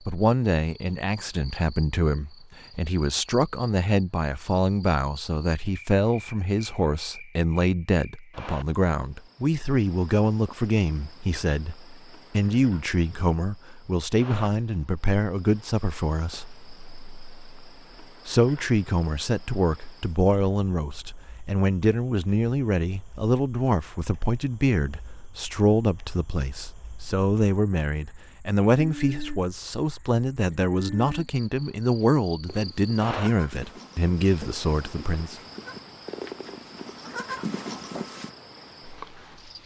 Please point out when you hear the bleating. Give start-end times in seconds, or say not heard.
32.5-38.3.